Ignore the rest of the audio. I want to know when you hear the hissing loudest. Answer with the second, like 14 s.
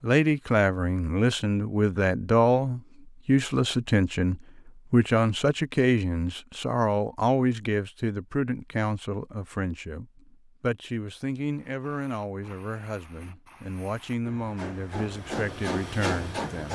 16 s.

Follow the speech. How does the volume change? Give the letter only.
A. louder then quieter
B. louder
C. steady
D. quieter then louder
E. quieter
E.